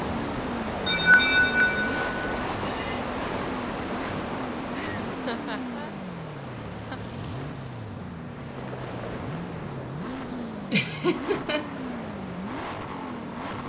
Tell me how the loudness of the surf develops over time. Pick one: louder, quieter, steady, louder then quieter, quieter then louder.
quieter.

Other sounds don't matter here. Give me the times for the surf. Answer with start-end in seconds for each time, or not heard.
0.0-13.6.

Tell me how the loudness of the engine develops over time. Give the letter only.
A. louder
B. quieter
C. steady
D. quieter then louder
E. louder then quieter
C.